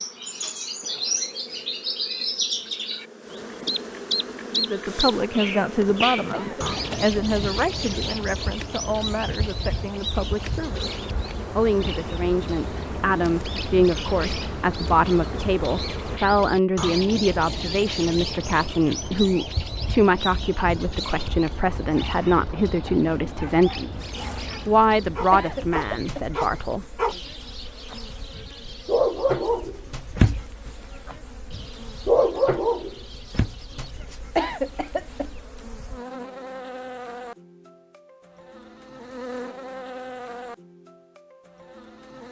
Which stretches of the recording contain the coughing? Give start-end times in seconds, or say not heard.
6.3-7.2, 25.3-26.2, 34.4-35.3.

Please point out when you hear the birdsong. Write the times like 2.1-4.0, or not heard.
0.0-35.5.